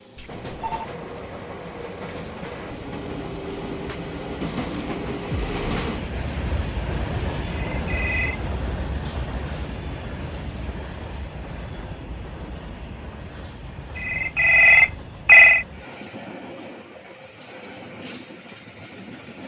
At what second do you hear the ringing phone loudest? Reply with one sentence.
The loudest moment of the ringing phone is at 15 seconds.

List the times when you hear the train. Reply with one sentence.
The train can be heard from 0.0 to 19.4 s.